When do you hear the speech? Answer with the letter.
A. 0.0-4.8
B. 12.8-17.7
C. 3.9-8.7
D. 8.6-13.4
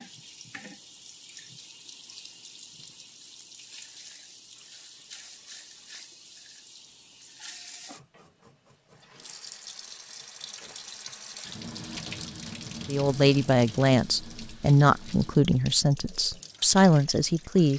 B.